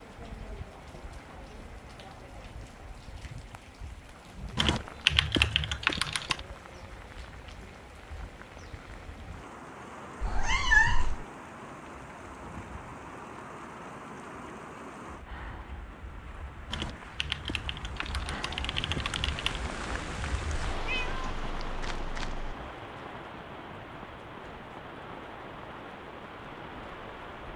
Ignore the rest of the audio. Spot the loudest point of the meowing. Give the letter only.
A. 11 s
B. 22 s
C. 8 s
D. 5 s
A.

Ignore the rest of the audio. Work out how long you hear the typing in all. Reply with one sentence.
The typing can be heard for 5 seconds in total.